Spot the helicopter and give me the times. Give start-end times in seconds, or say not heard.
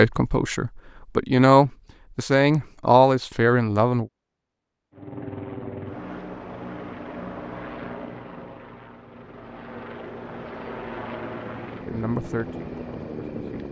4.9-13.6.